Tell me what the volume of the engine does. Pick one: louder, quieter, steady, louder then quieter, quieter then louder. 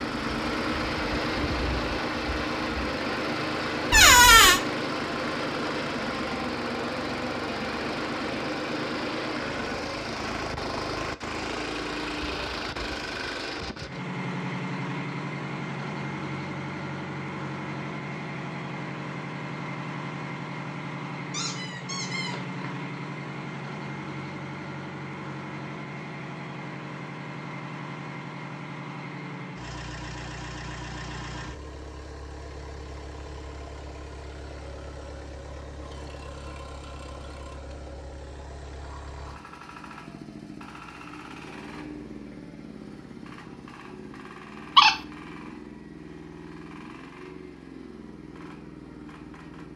quieter.